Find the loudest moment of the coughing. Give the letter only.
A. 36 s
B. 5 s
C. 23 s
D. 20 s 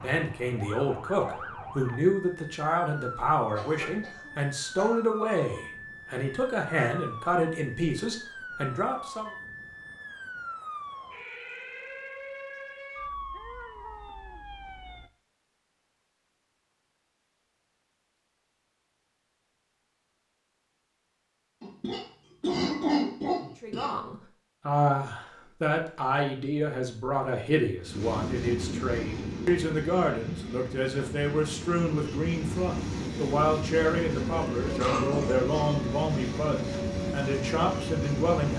C.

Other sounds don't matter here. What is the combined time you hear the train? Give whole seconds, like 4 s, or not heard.
11 s.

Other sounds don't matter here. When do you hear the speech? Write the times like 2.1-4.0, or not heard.
0.0-9.3, 23.6-38.5.